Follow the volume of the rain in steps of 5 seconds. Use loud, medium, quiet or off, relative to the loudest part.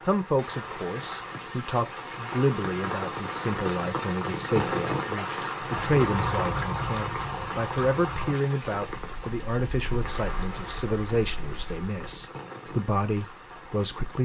loud, loud, medium.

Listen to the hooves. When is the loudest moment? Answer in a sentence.
The loudest moment of the hooves is at 6 seconds.